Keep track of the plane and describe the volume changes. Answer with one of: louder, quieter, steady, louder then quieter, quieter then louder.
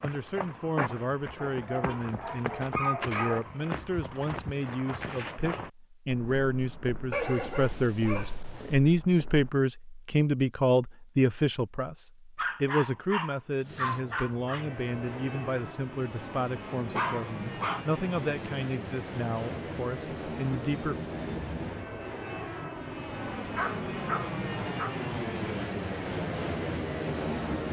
louder.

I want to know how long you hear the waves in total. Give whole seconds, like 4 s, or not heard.
not heard.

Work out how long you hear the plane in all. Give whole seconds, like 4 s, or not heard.
14 s.